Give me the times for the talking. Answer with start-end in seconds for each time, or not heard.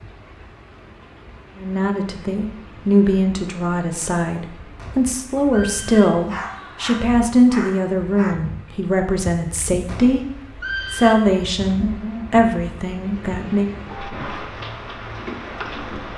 1.6-10.2, 10.9-13.7.